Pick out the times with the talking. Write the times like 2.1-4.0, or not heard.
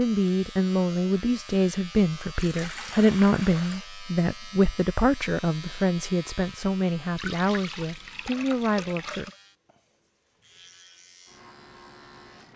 0.0-9.3.